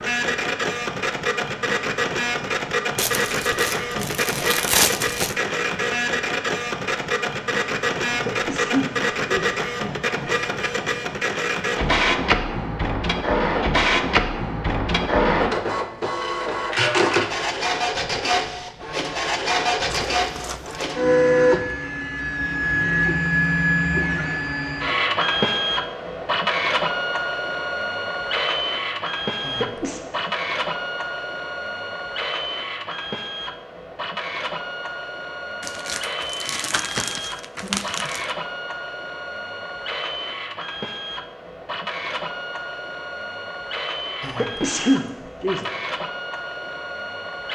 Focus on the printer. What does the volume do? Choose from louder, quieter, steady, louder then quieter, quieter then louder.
quieter.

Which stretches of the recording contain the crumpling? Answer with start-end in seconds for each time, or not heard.
3.0-5.3, 19.9-20.9, 35.6-38.3.